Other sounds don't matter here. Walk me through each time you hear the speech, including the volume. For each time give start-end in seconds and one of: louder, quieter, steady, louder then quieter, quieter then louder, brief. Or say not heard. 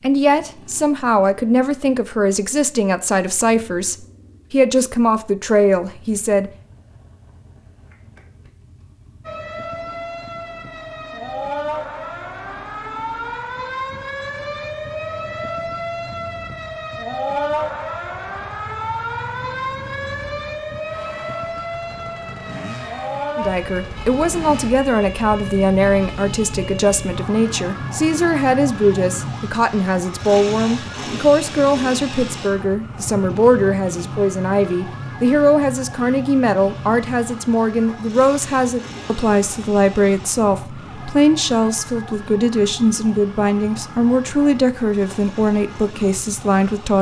0.0-6.5 steady
23.4-46.9 steady.